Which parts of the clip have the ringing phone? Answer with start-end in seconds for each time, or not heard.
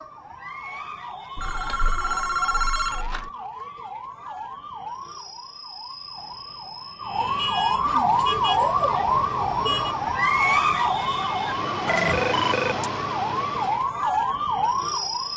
1.4-3.3, 11.8-12.9.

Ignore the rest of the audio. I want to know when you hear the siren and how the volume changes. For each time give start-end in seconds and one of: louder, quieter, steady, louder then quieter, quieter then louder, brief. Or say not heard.
0.0-15.3 louder.